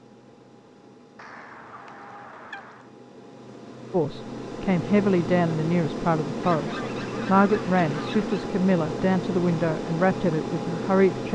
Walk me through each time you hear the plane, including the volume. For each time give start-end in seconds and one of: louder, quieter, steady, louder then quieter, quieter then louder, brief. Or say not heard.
0.0-11.3 louder.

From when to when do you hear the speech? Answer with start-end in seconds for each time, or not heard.
3.9-11.3.